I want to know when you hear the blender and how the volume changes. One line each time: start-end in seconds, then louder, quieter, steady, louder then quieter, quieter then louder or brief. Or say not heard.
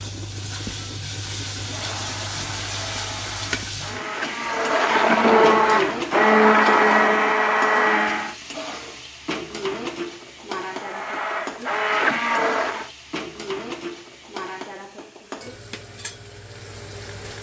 1.6-8.3 louder
10.7-12.9 brief.